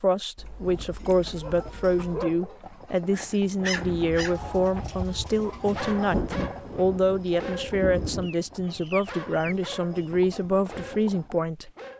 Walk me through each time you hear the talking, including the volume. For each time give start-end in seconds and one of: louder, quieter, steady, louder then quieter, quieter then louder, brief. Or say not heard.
0.0-11.7 steady.